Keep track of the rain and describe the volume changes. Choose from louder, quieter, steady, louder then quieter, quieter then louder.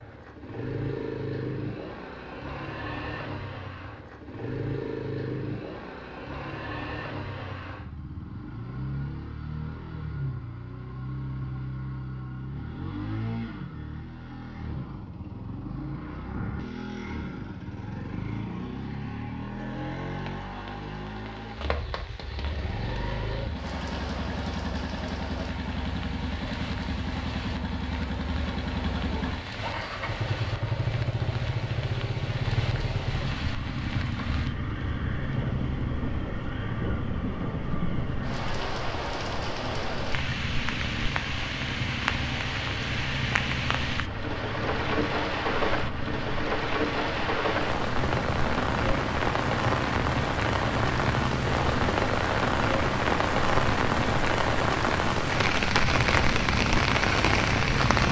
louder.